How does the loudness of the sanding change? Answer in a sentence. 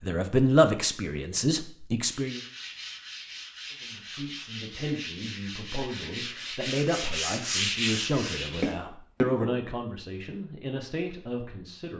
The loudness of the sanding goes up.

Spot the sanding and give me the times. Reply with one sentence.
The sanding can be heard from 2.0 to 8.8 s.